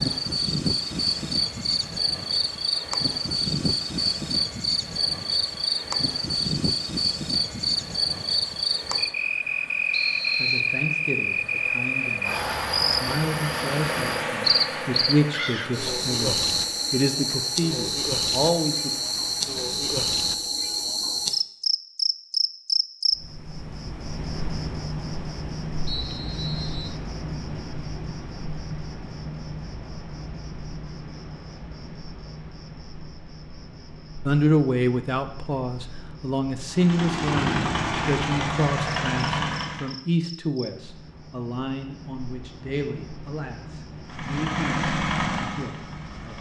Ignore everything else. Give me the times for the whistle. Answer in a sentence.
The whistle can be heard from 9.9 to 10.8 s, from 25.9 to 26.9 s and from 37.3 to 37.8 s.